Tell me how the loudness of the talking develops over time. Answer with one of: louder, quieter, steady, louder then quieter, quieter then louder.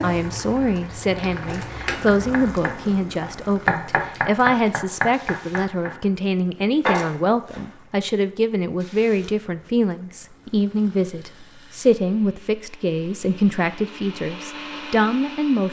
steady.